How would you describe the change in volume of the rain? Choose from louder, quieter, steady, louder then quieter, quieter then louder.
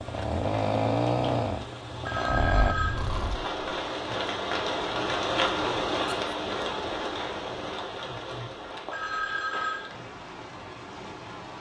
louder then quieter.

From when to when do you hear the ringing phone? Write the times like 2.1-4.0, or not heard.
2.0-3.0, 8.9-9.9.